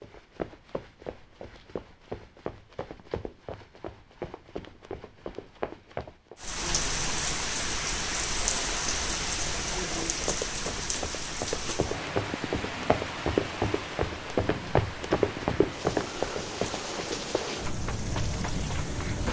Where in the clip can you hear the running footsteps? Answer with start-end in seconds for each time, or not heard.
0.0-6.5, 10.1-18.9.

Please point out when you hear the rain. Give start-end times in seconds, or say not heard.
6.3-19.2.